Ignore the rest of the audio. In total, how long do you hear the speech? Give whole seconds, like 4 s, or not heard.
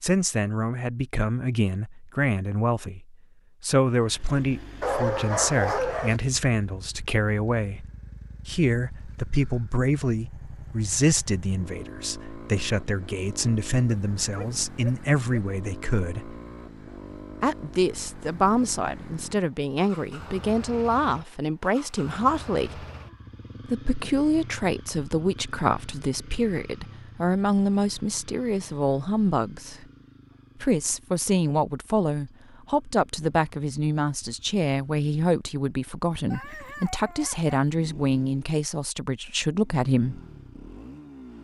37 s.